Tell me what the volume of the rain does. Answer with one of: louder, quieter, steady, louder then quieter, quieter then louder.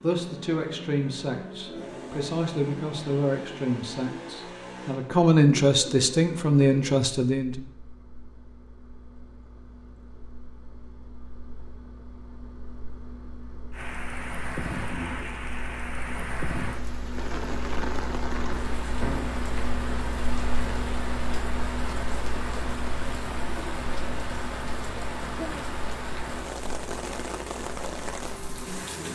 steady.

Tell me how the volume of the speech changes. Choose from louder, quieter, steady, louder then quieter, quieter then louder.
louder.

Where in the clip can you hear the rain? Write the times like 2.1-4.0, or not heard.
13.7-29.1.